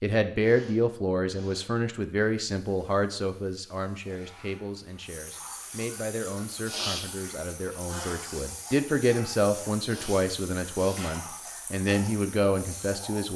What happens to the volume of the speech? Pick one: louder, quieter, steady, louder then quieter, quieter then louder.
quieter then louder.